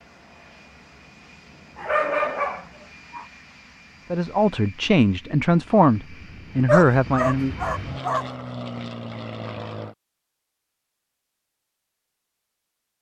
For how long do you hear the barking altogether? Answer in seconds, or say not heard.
3 s.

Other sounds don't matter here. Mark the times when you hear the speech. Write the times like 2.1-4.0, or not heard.
4.1-7.5.